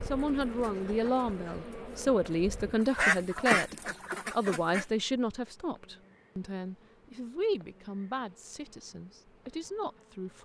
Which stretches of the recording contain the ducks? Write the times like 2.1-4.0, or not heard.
0.0-4.8.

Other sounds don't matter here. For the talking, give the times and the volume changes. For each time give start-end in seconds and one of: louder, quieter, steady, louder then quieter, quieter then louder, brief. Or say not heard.
0.1-10.4 quieter.